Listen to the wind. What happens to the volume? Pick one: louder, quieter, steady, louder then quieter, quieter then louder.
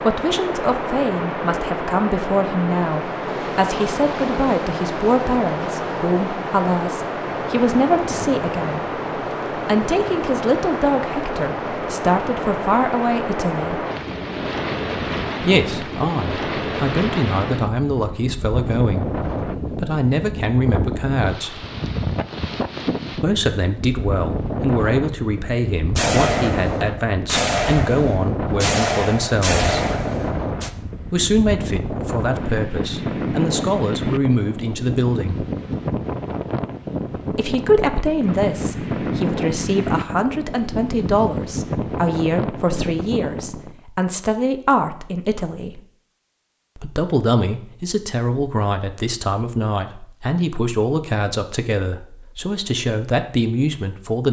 steady.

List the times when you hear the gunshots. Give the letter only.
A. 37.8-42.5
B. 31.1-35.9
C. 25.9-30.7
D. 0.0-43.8
C.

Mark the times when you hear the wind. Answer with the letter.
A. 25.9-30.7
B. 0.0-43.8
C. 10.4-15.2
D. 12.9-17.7
B.